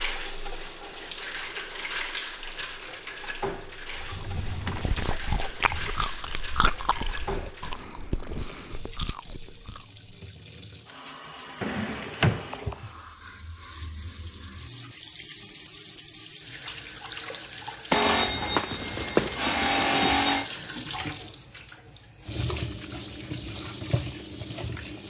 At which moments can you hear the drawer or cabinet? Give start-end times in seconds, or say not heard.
4.0-6.0, 11.6-12.9, 19.8-20.9.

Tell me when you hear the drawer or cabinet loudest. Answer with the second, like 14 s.
12 s.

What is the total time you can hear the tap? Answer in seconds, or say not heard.
25 s.